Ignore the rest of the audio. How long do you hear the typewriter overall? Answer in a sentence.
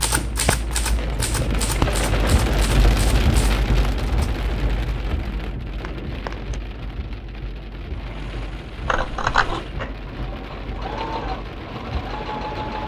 You can hear the typewriter for 4 seconds altogether.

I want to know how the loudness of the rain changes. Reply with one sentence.
The loudness of the rain goes down.